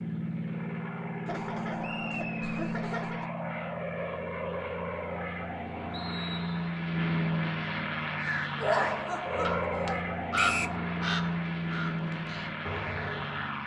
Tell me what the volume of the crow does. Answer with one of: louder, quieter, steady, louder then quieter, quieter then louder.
louder then quieter.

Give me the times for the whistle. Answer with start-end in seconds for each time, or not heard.
1.8-2.8, 5.9-6.8, 10.3-10.8.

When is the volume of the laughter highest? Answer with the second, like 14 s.
9 s.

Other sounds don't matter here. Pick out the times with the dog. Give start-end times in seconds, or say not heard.
not heard.